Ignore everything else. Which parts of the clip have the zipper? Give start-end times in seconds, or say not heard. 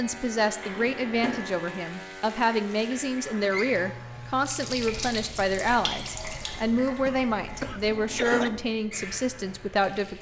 not heard.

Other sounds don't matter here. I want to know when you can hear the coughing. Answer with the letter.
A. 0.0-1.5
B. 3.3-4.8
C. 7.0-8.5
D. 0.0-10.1
C.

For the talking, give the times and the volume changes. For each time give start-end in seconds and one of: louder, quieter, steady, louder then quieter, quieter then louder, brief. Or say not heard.
0.0-10.1 steady.